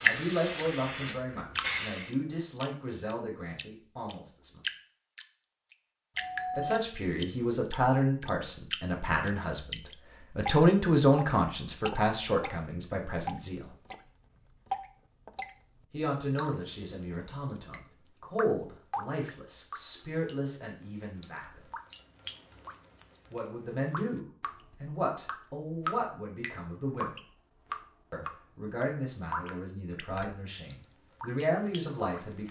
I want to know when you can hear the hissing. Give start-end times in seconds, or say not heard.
0.0-2.1.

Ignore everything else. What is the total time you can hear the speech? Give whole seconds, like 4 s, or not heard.
26 s.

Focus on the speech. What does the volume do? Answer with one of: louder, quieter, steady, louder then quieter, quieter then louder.
louder then quieter.